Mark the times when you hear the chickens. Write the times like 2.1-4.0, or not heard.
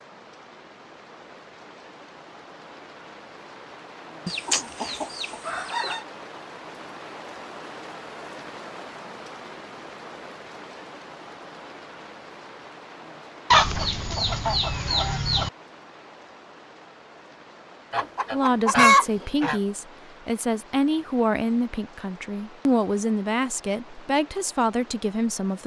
4.2-6.0, 13.5-15.5, 17.9-19.6.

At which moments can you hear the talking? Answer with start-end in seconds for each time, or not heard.
18.3-25.6.